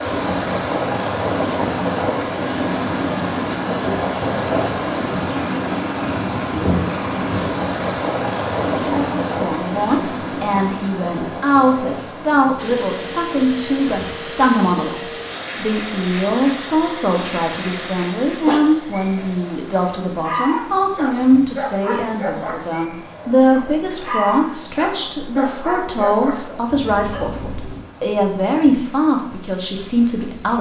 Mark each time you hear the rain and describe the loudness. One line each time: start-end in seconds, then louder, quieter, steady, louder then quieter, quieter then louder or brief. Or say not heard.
0.0-30.5 quieter.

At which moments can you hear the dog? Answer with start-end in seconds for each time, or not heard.
18.2-27.9.